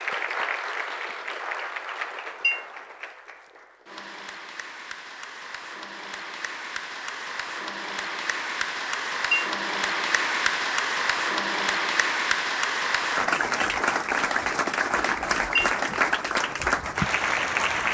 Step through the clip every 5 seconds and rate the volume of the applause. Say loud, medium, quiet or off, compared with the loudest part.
medium, medium, loud, loud.